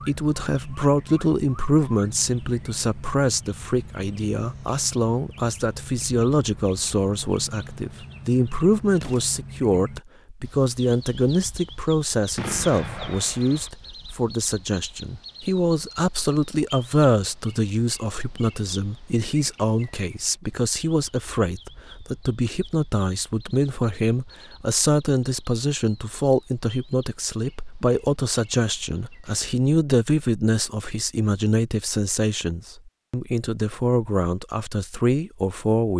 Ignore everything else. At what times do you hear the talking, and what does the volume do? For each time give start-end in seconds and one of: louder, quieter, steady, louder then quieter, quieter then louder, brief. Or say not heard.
0.1-35.9 steady.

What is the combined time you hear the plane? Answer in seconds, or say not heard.
not heard.